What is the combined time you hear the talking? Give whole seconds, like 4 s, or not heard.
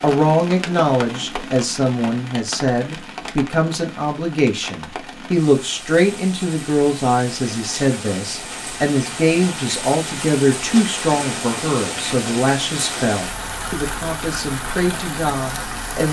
16 s.